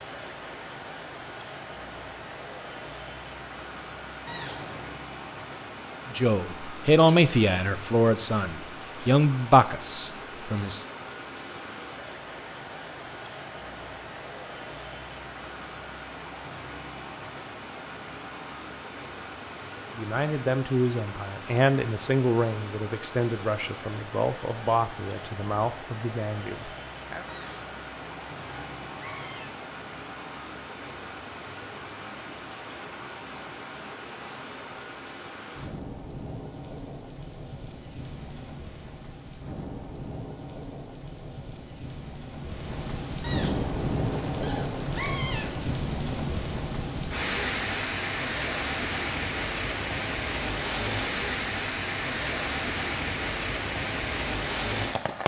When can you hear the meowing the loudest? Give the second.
45 s.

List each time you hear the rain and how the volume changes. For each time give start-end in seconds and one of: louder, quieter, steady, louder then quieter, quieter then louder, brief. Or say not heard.
0.0-55.2 louder.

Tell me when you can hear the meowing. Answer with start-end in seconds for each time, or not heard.
4.2-5.0, 27.2-29.6, 43.2-45.8.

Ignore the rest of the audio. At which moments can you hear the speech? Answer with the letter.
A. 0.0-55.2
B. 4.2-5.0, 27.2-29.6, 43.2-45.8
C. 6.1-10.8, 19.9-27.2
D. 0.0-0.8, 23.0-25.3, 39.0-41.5
C.